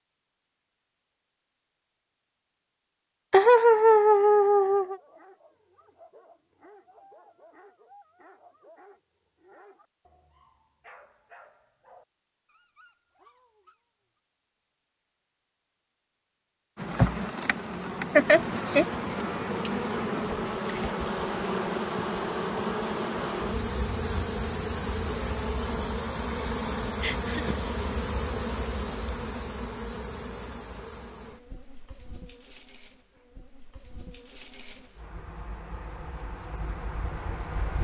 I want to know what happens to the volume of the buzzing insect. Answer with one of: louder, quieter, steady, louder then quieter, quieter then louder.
quieter.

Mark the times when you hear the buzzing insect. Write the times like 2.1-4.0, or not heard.
16.8-37.7.